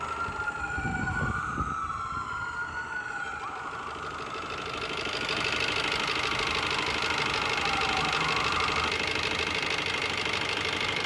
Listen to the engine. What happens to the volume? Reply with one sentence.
The volume of the engine goes up.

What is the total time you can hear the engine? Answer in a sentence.
The engine can be heard for 11 seconds in total.